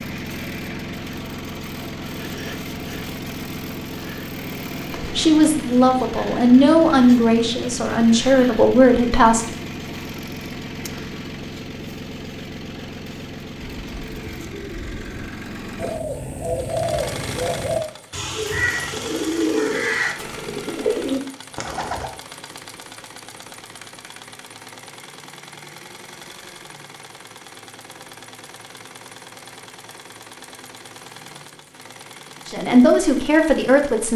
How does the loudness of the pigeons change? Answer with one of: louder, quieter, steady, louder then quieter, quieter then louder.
louder.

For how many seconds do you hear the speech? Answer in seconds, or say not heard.
6 s.